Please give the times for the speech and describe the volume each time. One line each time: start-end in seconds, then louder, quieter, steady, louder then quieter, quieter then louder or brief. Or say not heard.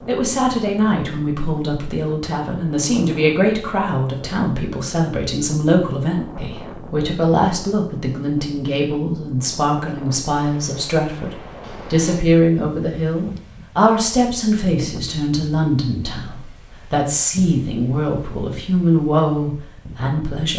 0.1-20.5 steady.